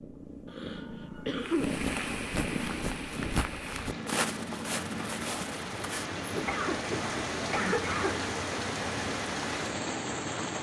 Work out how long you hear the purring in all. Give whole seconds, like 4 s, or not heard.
5 s.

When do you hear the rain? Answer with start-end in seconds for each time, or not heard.
1.4-10.5.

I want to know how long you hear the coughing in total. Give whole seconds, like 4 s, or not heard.
3 s.